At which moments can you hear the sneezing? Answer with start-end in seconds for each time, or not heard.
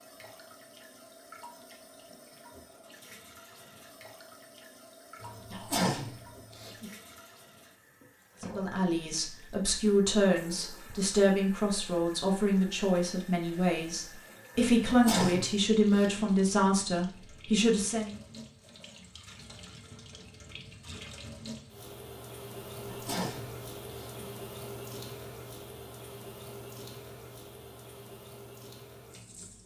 5.2-6.9, 14.6-16.2, 22.8-24.2.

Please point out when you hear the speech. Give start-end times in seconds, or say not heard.
8.4-18.1.